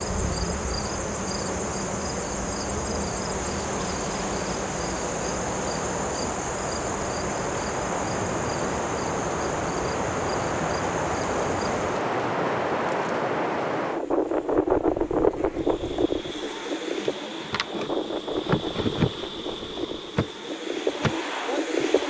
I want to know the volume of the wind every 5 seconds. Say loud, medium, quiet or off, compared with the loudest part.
medium, loud, loud, loud, loud.